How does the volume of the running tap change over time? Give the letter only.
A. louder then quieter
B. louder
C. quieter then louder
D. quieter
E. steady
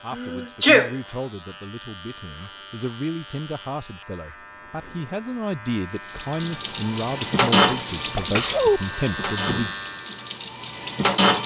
A.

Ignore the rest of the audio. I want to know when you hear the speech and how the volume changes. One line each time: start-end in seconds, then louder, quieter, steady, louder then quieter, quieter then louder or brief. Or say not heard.
0.0-9.7 louder.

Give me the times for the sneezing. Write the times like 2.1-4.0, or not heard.
0.1-0.9, 8.2-8.8.